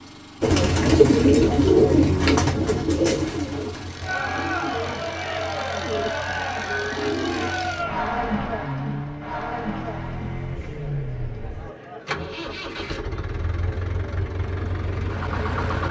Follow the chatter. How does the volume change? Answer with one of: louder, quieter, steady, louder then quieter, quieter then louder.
quieter.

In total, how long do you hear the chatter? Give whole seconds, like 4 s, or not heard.
12 s.